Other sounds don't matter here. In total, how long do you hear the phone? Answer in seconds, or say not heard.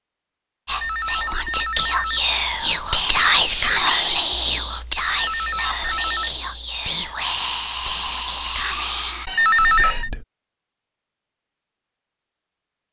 4 s.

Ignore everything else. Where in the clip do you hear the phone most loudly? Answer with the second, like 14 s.
10 s.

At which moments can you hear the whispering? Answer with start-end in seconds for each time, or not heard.
0.7-10.2.